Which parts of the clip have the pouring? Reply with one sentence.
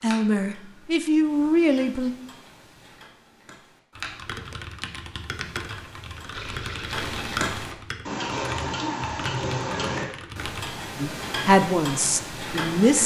You can hear the pouring from 6.3 to 7.4 s.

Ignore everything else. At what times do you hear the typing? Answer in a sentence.
The typing can be heard from 4.0 to 10.7 s.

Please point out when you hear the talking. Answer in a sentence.
You can hear the talking from 0.0 to 2.1 s and from 11.0 to 13.0 s.